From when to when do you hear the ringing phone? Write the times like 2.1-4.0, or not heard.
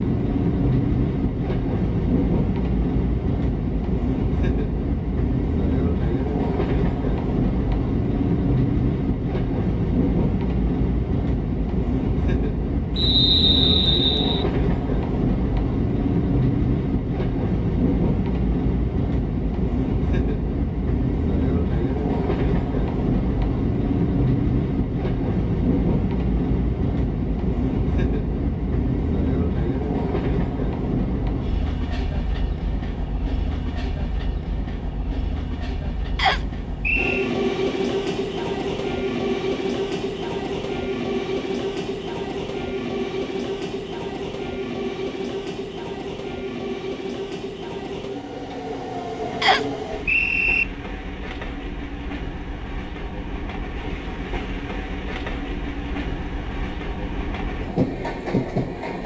not heard.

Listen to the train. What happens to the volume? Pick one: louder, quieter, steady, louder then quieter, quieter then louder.
quieter.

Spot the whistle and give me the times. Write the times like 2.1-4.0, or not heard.
12.9-14.4, 36.1-37.3, 49.4-50.6.